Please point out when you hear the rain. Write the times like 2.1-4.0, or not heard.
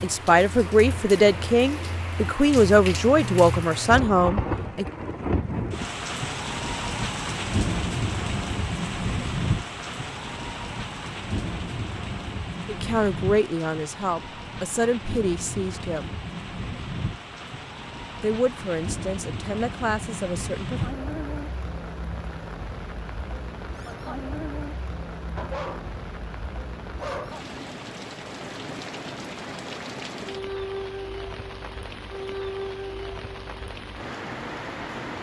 0.0-35.1.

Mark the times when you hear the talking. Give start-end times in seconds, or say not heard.
0.0-4.8, 12.7-16.1, 18.2-20.8.